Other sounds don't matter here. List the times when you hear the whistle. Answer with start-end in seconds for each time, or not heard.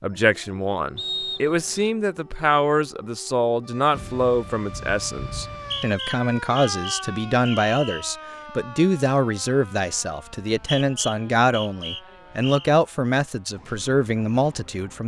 0.9-1.9, 5.5-8.1, 10.4-12.7.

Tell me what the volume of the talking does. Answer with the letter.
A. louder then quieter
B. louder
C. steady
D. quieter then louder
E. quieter
C.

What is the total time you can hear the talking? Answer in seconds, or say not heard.
15 s.